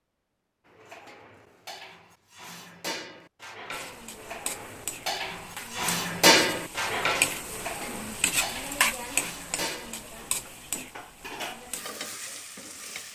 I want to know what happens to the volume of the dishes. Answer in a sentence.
The volume of the dishes goes up, then down.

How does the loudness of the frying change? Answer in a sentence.
The loudness of the frying goes up, then down.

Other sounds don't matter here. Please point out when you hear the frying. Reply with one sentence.
You can hear the frying from 3.7 to 13.1 s.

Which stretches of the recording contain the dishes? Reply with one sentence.
The dishes can be heard from 0.7 to 12.5 s.